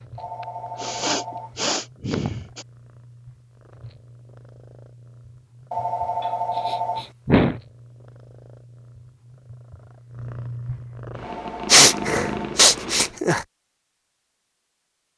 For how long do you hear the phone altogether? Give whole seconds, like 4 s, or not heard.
4 s.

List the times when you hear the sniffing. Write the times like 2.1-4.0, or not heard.
0.4-2.6, 6.7-7.5, 11.7-13.4.